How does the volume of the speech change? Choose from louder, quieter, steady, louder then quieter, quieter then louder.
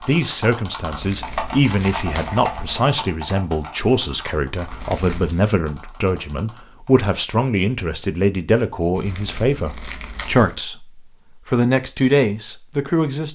steady.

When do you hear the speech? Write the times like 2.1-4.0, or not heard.
0.0-13.3.